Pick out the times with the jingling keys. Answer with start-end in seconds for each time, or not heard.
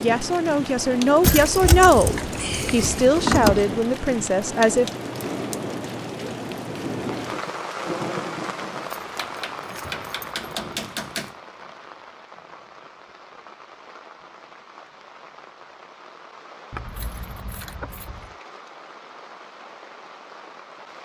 1.2-3.6, 8.9-11.3, 16.7-18.4.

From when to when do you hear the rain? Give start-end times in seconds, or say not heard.
0.0-21.0.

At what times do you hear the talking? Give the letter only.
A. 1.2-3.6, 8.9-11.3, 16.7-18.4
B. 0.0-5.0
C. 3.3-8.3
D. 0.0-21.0
B.